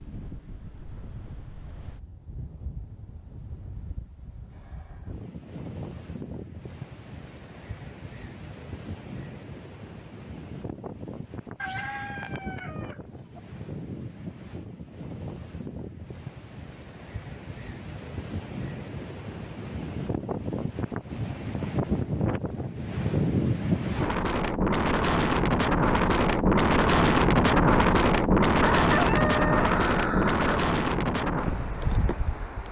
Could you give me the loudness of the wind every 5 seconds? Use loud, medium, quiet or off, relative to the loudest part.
quiet, quiet, quiet, quiet, medium, loud, medium.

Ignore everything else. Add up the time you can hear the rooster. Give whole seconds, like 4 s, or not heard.
4 s.